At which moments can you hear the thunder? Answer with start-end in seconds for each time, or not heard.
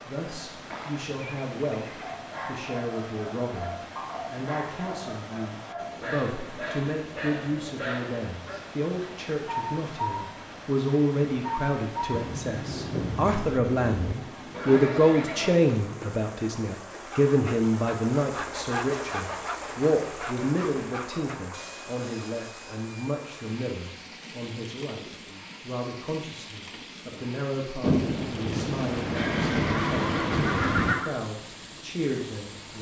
12.1-14.2, 27.8-30.9.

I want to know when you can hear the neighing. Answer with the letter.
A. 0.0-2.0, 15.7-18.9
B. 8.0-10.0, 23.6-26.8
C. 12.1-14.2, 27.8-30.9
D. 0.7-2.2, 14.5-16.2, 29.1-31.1
D.